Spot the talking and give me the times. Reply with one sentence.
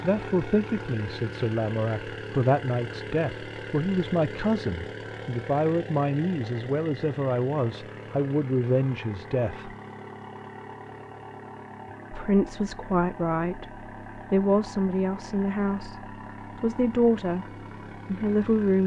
You can hear the talking from 0.0 to 9.8 s, from 12.1 to 17.4 s and from 18.1 to 18.8 s.